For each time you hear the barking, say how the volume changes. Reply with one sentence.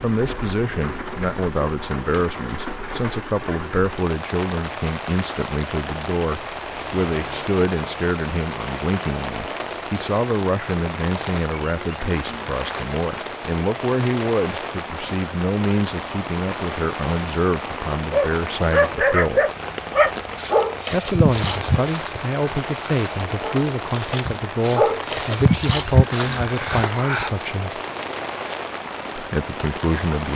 The barking can be heard from 18.1 to 27.3 s, getting quieter then louder.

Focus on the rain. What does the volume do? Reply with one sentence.
The volume of the rain stays about the same.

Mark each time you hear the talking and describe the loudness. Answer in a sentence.
You can hear the talking from 0.0 to 19.5 s, at a steady volume; from 20.9 to 27.8 s, at a steady volume; and briefly from 29.1 to 30.3 s.